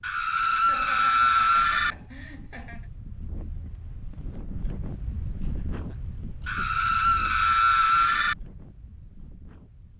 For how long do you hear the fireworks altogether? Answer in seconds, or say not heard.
not heard.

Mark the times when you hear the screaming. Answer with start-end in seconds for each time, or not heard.
0.0-1.9, 6.5-8.3.